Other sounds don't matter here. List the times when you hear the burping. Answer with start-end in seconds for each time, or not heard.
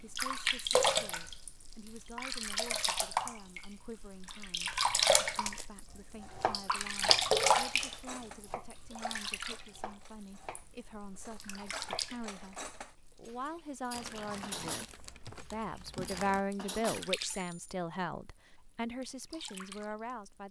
not heard.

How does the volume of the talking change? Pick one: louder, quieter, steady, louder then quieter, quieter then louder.
louder.